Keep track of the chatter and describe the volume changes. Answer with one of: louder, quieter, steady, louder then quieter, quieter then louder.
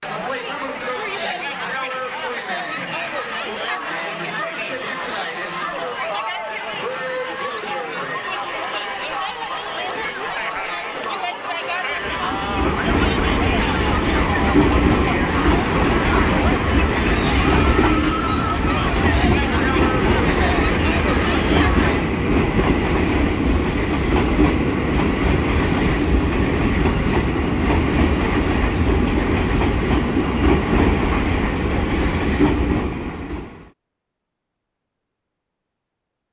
steady.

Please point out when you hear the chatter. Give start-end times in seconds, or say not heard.
0.0-22.1.